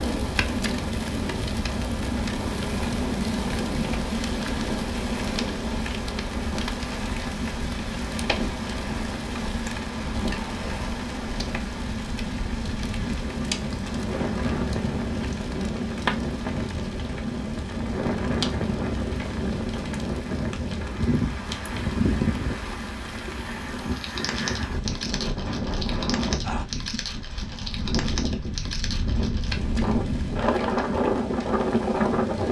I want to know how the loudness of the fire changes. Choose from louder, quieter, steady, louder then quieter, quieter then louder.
quieter.